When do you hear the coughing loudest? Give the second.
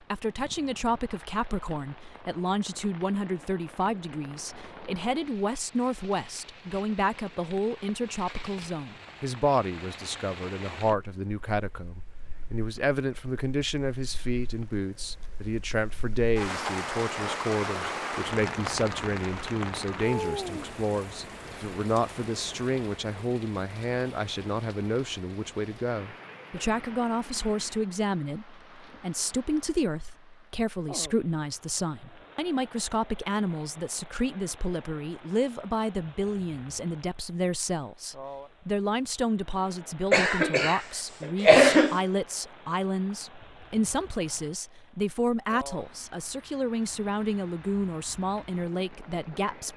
42 s.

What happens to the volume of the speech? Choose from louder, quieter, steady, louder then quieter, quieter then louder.
steady.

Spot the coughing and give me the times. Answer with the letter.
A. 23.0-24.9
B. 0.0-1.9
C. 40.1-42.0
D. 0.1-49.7
C.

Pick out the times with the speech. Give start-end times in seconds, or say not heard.
0.1-49.7.